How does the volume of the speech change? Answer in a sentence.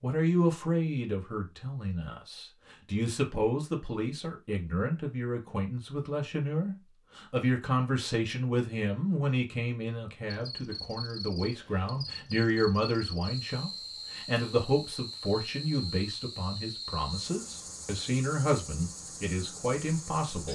The volume of the speech stays about the same.